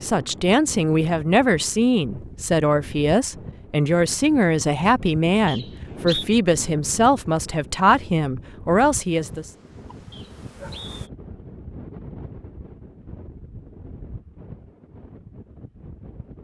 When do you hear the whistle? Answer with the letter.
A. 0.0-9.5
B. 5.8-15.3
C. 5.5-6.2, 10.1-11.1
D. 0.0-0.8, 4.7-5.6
C.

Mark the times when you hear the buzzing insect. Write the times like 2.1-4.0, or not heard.
9.2-11.1.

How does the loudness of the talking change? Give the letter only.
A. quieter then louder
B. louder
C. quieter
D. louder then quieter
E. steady
E.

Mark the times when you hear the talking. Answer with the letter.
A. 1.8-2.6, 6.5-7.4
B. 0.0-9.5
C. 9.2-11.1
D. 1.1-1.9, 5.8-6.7
B.